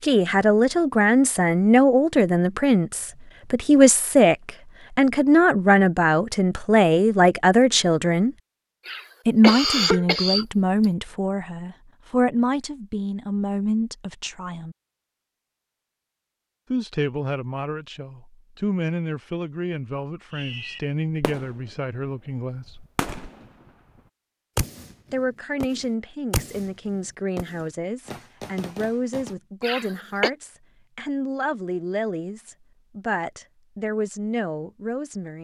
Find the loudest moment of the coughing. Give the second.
10 s.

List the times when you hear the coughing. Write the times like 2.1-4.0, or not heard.
8.8-10.8, 29.6-30.3.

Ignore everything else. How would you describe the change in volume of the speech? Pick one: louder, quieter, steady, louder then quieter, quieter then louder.
quieter.